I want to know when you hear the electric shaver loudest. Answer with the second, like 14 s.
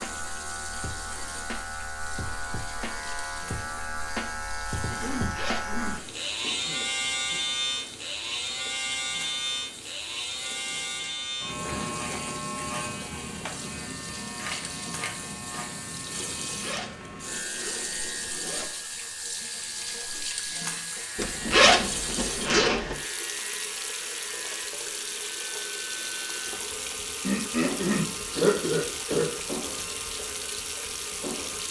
7 s.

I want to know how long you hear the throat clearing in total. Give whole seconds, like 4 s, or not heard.
5 s.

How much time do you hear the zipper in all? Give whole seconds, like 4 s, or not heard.
5 s.